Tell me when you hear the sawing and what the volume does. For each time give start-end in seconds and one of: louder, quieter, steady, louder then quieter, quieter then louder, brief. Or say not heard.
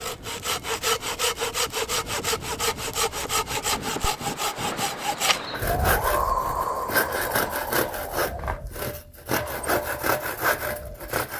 0.0-11.3 steady.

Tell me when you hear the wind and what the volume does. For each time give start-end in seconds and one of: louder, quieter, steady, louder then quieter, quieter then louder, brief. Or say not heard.
0.0-11.2 louder then quieter.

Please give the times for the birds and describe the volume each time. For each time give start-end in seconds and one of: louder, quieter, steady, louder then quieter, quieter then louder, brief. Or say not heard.
not heard.